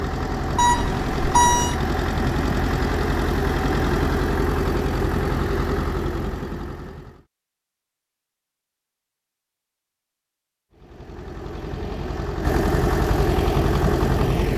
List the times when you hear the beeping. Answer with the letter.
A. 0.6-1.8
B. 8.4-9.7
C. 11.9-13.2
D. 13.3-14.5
A.